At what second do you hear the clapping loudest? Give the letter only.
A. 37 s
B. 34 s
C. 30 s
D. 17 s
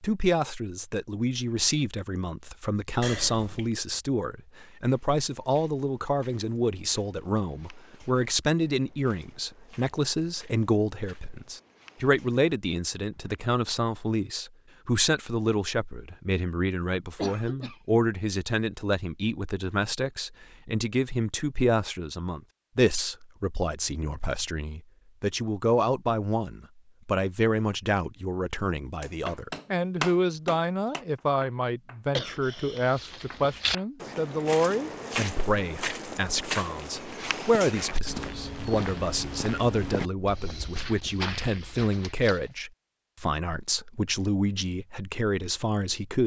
C.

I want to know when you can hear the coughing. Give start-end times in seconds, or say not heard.
3.0-3.7, 17.1-17.9, 32.1-32.9.